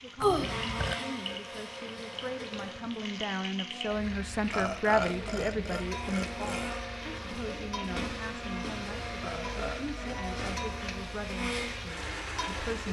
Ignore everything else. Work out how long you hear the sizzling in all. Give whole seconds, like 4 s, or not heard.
13 s.